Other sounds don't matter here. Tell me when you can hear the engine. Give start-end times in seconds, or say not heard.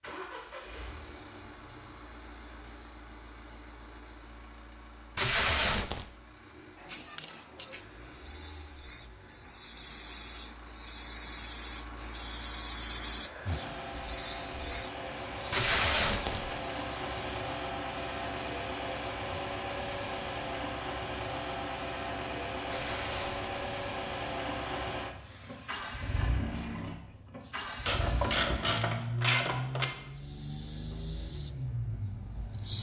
0.0-32.7.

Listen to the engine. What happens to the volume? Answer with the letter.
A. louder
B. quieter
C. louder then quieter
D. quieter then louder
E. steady
A.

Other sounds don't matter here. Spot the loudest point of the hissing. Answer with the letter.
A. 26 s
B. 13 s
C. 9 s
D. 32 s
B.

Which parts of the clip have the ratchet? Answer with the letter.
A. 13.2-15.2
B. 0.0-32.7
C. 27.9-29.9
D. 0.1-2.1
C.